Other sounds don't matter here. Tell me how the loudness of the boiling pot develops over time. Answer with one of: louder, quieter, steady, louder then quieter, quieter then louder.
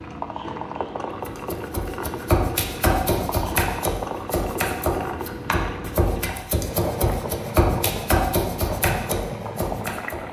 steady.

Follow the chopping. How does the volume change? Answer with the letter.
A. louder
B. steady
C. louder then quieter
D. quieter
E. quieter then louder
B.